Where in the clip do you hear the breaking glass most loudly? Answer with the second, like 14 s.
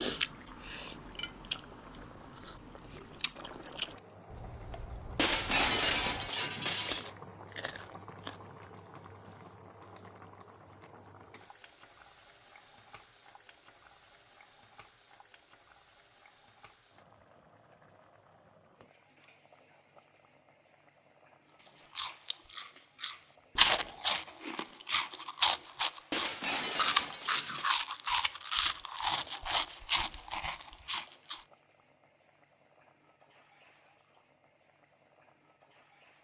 6 s.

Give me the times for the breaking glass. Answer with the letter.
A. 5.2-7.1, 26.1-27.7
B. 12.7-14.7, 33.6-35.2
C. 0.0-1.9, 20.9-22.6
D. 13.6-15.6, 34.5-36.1
A.